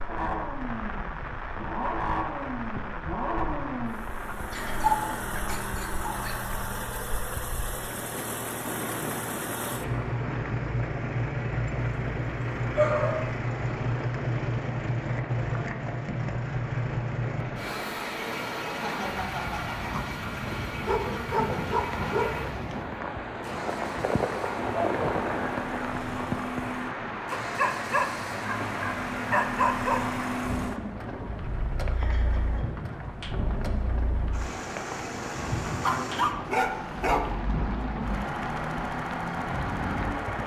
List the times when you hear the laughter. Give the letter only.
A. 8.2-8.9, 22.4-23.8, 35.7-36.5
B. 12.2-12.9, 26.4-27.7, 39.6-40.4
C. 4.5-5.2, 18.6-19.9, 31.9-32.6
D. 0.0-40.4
C.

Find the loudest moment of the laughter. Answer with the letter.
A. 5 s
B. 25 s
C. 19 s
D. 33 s
C.